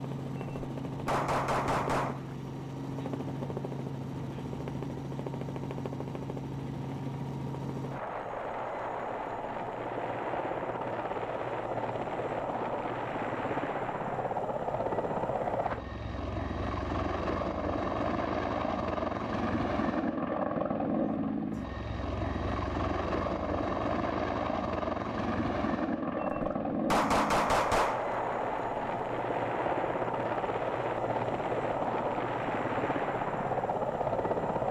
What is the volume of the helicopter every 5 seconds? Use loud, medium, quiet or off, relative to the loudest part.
medium, medium, loud, loud, loud, loud, loud.